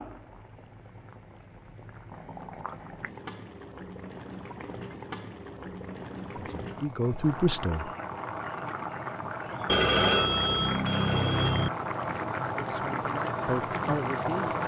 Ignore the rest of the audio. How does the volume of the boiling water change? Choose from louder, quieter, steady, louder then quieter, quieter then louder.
louder.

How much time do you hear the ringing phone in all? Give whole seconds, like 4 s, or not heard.
2 s.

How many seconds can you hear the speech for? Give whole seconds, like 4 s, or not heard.
4 s.